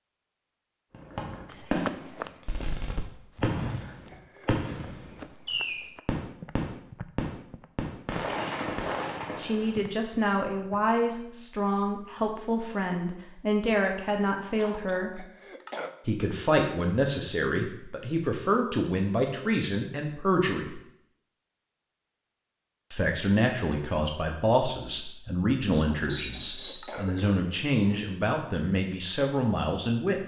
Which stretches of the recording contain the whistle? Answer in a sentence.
You can hear the whistle from 26.1 to 26.9 s.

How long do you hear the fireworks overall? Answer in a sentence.
The fireworks can be heard for 9 seconds in total.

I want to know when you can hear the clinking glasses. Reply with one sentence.
The clinking glasses can't be heard in this clip.